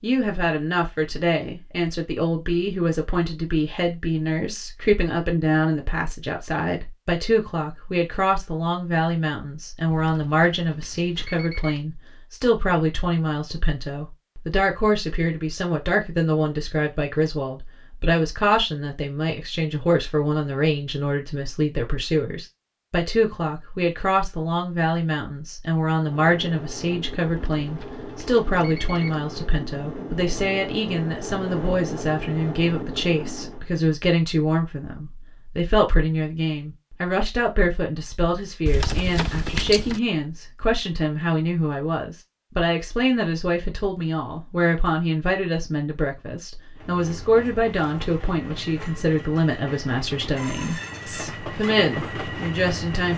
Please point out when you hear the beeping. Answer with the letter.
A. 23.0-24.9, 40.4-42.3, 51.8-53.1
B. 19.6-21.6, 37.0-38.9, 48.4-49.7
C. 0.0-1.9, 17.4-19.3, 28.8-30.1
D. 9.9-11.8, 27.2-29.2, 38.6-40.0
D.